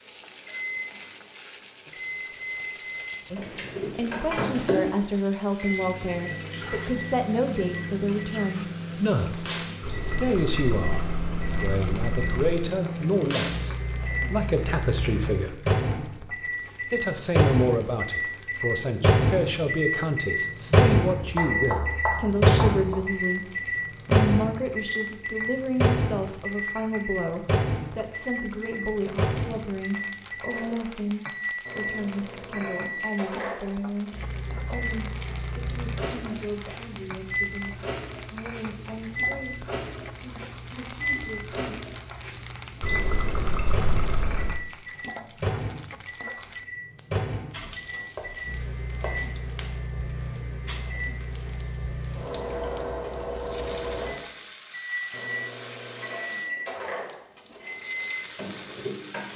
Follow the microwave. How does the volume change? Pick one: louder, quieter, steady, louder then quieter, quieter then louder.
louder then quieter.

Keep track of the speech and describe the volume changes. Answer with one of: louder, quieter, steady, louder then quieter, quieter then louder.
quieter.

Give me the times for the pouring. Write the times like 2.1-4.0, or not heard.
9.8-12.6, 42.8-44.6.